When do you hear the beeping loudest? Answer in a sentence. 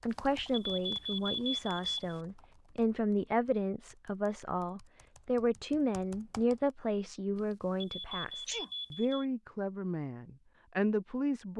The loudest moment of the beeping is at 1 second.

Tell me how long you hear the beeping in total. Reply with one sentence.
The beeping can be heard for 4 seconds in total.